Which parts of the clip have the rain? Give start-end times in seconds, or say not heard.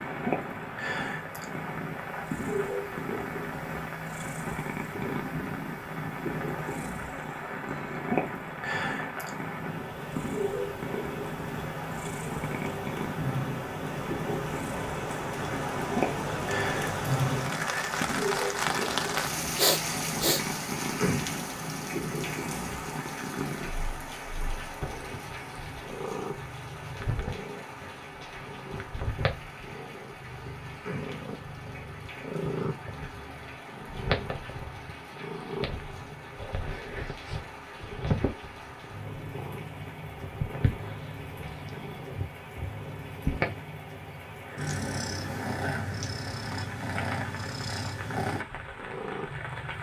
0.0-49.7.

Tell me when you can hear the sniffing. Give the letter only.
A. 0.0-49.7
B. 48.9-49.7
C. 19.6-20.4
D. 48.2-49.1
C.